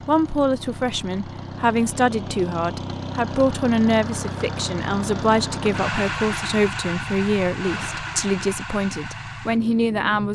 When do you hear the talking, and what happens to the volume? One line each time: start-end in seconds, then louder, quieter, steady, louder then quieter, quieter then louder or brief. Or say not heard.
0.1-10.2 steady.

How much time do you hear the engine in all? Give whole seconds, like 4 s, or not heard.
10 s.